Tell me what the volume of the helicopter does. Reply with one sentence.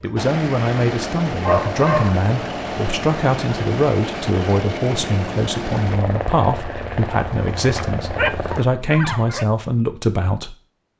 The volume of the helicopter stays about the same.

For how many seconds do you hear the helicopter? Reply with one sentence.
The helicopter can be heard for 9 seconds in total.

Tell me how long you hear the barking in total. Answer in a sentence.
The barking can be heard for 3 seconds in total.